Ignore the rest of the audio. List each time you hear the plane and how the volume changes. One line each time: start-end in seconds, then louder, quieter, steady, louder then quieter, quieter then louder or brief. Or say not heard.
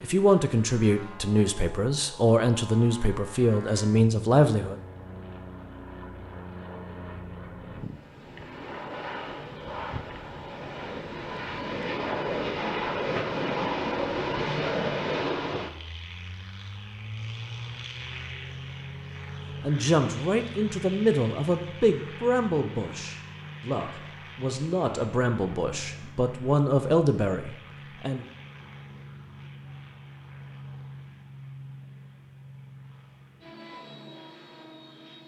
0.0-35.2 louder then quieter.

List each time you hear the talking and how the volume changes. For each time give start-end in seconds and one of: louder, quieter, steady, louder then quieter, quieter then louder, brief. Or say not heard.
0.0-4.8 steady
19.6-28.2 quieter then louder.